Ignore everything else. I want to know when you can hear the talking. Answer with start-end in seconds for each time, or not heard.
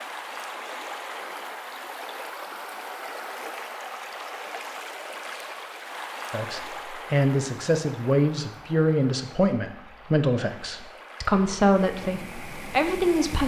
6.3-13.4.